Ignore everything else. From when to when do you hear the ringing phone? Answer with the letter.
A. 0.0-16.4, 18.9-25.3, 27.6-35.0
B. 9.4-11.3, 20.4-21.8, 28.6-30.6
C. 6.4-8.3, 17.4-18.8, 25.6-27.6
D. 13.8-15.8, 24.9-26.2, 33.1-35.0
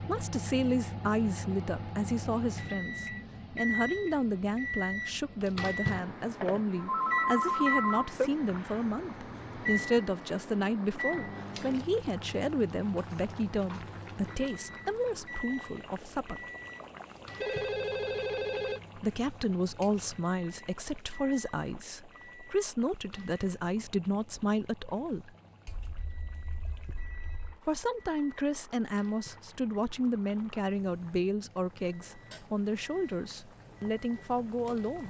C.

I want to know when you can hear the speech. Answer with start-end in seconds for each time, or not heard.
0.0-16.4, 18.9-25.3, 27.6-35.0.